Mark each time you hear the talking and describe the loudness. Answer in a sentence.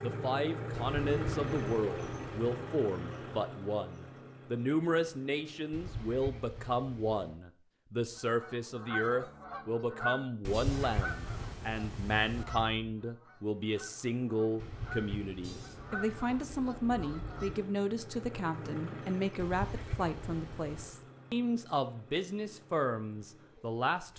You can hear the talking from 0.0 to 24.1 s, at a steady volume.